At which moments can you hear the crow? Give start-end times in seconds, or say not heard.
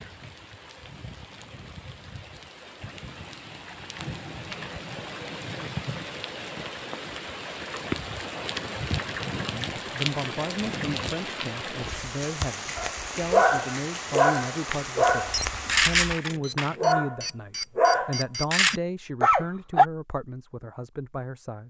not heard.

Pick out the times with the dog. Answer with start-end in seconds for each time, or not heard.
12.8-19.9.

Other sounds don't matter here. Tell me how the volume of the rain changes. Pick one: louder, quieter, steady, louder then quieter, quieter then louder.
louder.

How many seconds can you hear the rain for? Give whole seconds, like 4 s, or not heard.
16 s.